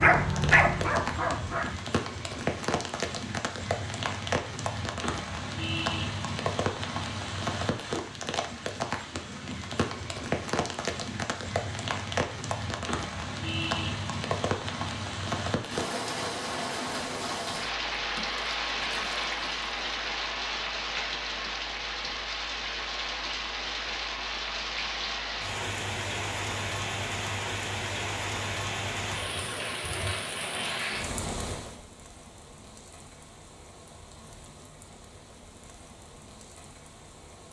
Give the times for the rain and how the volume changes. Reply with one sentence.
You can hear the rain from 0.0 to 37.4 s, getting quieter.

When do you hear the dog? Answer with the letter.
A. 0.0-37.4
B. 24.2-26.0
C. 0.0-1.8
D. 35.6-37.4
C.